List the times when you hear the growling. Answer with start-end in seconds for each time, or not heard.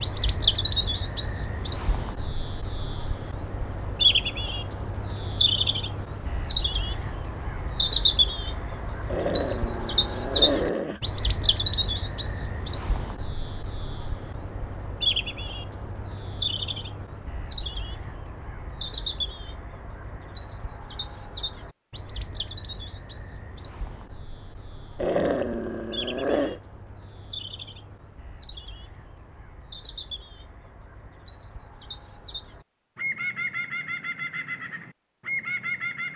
9.1-11.0, 24.9-26.6.